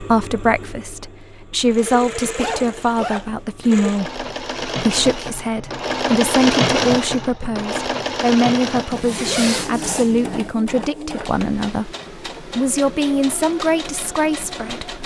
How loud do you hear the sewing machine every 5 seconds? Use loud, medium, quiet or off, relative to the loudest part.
medium, loud, medium.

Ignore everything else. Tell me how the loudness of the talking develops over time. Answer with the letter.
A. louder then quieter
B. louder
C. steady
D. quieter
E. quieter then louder
C.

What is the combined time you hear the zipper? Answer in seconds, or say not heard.
3 s.